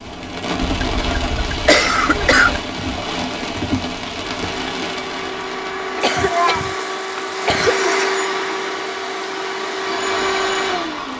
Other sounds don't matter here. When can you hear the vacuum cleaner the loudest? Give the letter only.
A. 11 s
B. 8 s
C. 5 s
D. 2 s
B.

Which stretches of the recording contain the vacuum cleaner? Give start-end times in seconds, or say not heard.
4.2-11.1.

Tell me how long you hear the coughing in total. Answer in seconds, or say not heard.
4 s.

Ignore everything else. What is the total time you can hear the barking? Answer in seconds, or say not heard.
not heard.